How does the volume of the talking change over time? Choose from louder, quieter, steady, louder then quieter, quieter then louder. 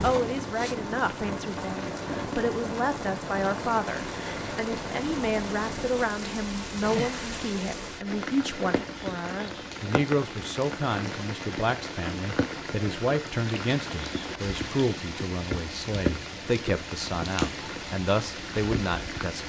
steady.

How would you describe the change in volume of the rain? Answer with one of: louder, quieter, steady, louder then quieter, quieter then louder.
steady.